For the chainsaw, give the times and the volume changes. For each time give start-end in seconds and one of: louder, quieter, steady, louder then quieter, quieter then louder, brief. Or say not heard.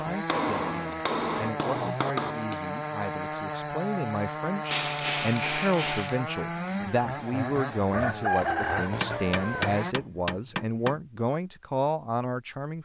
0.0-9.9 steady.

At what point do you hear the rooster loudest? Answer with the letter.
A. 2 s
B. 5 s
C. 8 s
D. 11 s
C.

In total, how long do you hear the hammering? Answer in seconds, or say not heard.
6 s.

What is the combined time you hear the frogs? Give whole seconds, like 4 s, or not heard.
not heard.